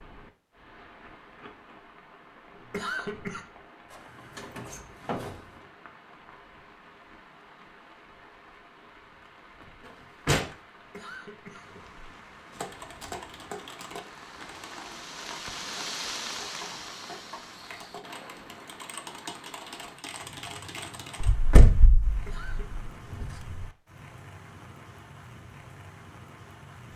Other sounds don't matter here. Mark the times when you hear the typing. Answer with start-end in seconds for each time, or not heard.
12.5-21.5.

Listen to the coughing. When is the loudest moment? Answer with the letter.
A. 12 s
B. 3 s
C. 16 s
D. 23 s
B.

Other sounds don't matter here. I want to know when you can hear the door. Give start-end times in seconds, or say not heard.
3.9-5.5, 9.8-10.6, 21.2-23.5.